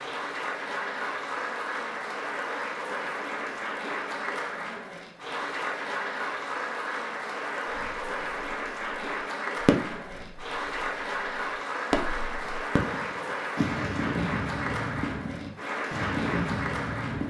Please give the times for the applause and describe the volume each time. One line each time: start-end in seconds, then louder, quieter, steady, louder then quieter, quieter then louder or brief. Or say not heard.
0.0-17.2 steady.